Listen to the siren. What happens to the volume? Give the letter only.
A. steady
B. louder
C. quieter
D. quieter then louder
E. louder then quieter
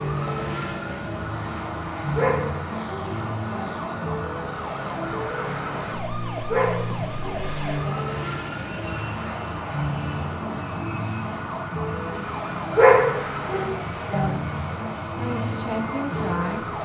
A.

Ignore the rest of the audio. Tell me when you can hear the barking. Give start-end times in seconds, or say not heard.
2.1-3.7, 6.5-8.0, 12.8-14.3.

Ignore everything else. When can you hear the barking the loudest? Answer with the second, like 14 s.
13 s.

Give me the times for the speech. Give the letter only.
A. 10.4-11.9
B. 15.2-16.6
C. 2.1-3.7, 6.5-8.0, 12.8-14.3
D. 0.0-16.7
B.